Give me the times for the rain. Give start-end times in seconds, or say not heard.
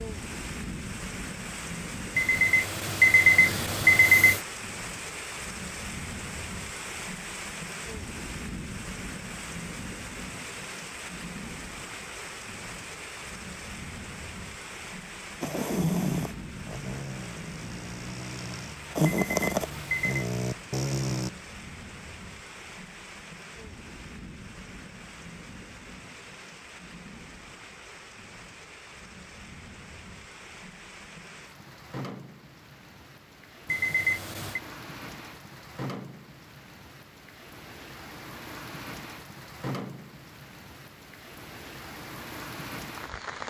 0.0-43.4.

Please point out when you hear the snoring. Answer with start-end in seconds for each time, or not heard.
15.4-21.3.